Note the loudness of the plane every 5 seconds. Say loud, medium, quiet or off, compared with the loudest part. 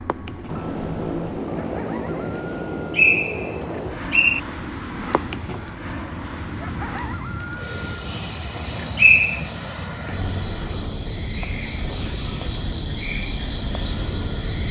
loud, medium, medium.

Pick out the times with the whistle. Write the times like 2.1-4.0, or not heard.
2.9-4.4, 8.6-9.4.